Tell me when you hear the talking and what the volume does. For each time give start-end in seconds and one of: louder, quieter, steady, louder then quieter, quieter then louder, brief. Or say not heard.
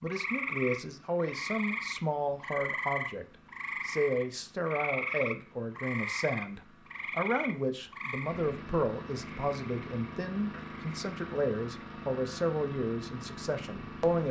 0.0-14.2 steady.